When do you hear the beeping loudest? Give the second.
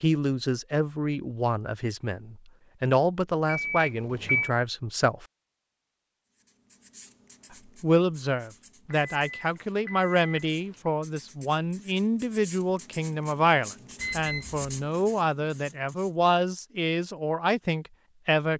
4 s.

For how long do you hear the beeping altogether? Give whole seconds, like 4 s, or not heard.
4 s.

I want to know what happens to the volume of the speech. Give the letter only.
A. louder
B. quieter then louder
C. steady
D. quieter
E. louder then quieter
C.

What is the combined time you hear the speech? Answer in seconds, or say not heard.
16 s.